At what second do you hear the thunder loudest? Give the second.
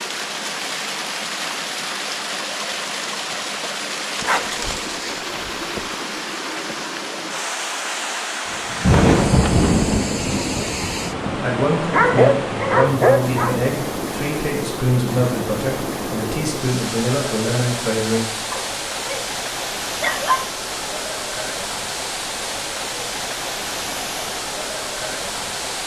9 s.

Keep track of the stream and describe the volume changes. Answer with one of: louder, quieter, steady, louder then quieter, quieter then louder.
steady.